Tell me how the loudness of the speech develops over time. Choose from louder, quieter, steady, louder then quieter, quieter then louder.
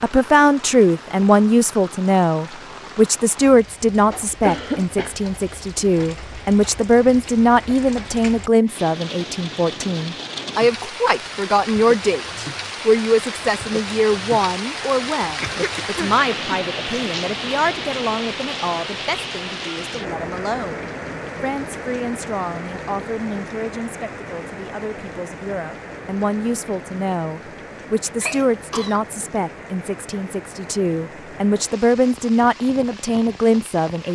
quieter then louder.